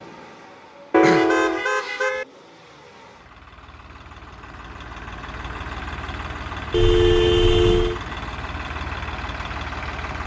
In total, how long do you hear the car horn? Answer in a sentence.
The car horn can be heard for 3 seconds in total.